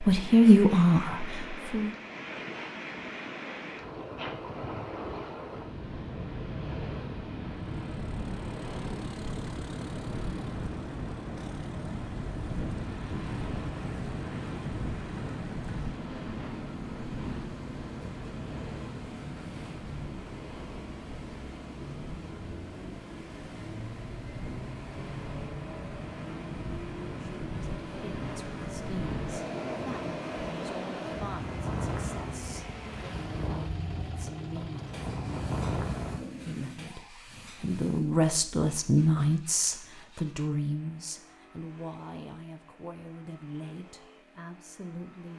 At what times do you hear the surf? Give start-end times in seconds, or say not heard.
0.0-36.2.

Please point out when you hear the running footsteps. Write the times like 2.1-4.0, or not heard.
not heard.